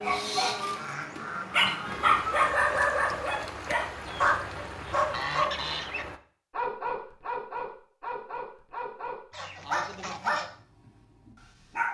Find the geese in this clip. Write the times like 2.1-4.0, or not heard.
0.3-2.4, 4.0-6.0, 9.3-10.5.